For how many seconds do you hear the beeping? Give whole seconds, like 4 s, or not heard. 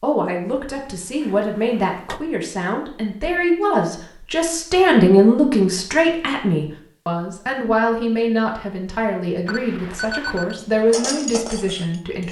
2 s.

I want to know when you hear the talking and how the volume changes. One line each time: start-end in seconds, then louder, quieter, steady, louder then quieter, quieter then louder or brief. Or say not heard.
0.0-12.2 louder then quieter.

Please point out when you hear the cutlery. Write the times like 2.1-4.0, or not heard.
10.6-12.2.